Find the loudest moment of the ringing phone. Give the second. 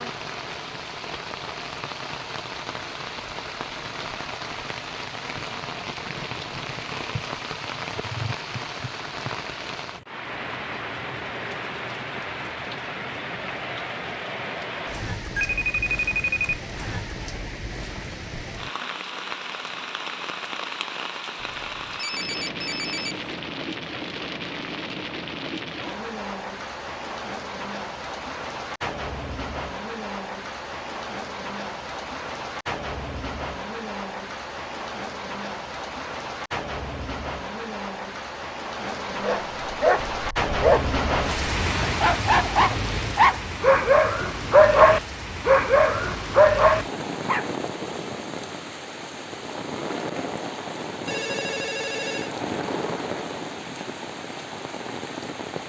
16 s.